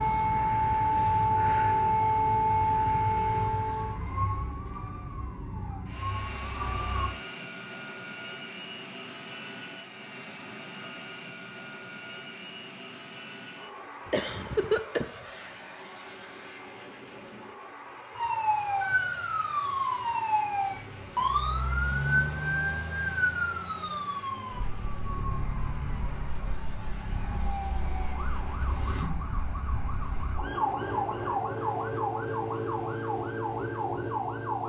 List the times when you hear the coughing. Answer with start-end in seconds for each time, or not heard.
14.1-15.5.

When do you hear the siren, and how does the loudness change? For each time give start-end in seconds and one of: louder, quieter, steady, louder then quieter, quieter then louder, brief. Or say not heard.
0.0-7.1 quieter
18.1-34.6 quieter then louder.